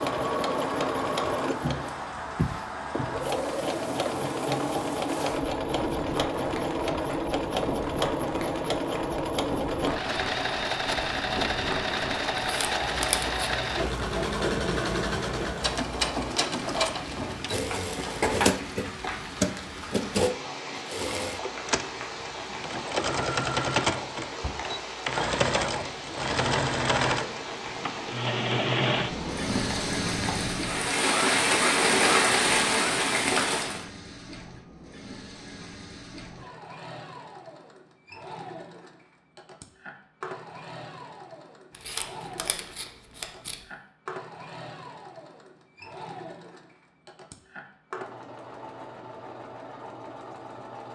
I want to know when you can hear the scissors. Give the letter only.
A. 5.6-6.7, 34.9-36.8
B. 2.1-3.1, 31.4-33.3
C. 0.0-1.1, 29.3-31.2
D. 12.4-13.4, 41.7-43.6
D.